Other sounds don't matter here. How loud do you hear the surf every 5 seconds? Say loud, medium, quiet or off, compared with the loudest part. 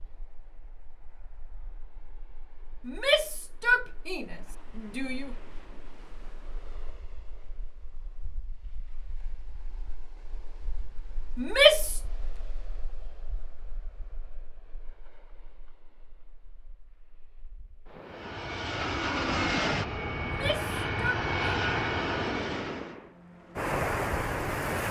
quiet, quiet, quiet, quiet, loud.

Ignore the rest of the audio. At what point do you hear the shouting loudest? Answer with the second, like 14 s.
12 s.